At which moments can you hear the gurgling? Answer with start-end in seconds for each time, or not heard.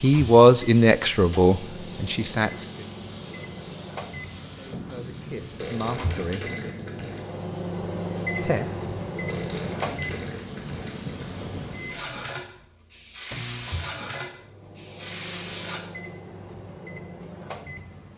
5.5-7.3, 9.2-11.2.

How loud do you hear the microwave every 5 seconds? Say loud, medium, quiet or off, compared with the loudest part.
medium, loud, medium, medium.